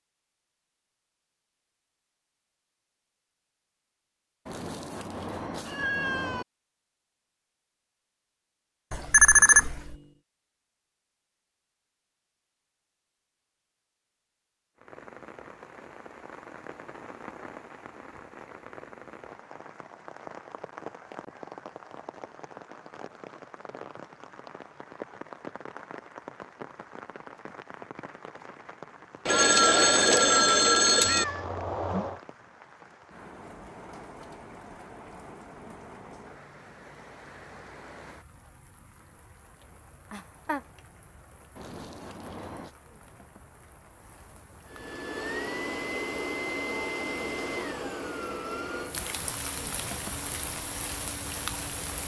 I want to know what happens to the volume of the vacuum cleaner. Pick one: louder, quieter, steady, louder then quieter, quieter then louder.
quieter.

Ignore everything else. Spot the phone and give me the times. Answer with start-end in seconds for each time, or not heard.
8.9-9.9, 29.2-31.2.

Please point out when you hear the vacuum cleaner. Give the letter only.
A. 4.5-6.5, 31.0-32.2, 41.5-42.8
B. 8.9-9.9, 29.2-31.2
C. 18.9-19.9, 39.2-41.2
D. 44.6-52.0
D.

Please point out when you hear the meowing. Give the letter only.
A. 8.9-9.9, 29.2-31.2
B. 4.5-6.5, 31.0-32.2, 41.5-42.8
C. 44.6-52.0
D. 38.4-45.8
B.